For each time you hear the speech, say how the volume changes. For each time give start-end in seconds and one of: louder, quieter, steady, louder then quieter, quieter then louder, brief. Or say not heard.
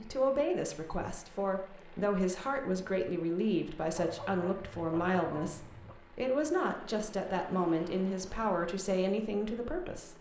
0.0-10.1 steady.